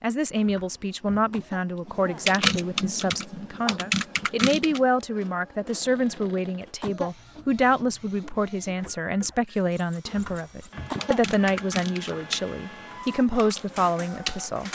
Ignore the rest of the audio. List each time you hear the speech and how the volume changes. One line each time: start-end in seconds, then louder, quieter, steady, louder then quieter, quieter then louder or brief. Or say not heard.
0.0-14.6 steady.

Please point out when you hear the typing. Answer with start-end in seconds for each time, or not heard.
1.9-4.8, 10.7-14.5.